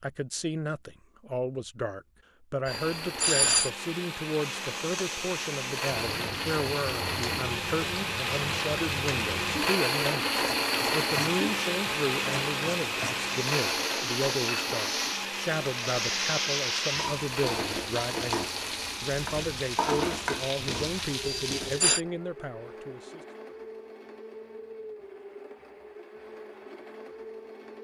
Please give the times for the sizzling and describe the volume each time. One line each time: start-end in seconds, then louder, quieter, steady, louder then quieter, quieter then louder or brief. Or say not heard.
4.4-21.9 louder.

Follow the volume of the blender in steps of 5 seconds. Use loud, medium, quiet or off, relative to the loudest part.
medium, loud, loud, medium, quiet, quiet.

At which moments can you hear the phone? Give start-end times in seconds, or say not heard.
2.6-3.7, 21.2-22.0.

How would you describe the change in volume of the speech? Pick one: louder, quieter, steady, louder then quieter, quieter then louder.
steady.